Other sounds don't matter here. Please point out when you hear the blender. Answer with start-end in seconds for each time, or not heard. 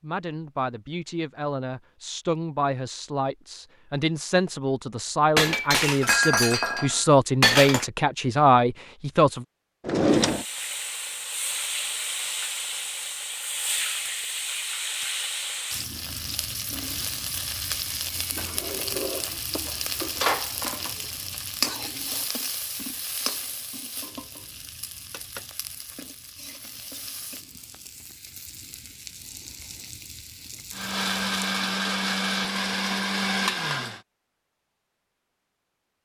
30.7-34.0.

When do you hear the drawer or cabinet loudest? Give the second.
10 s.